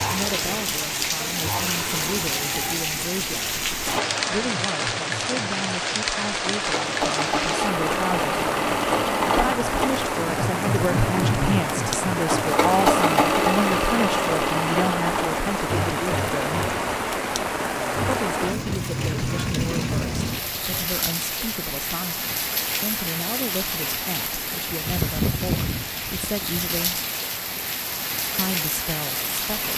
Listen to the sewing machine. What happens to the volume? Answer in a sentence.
The loudness of the sewing machine goes up, then down.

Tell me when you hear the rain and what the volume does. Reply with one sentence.
The rain can be heard from 0.0 to 29.7 s, at a steady volume.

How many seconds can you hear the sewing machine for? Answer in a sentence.
The sewing machine can be heard for 21 seconds in total.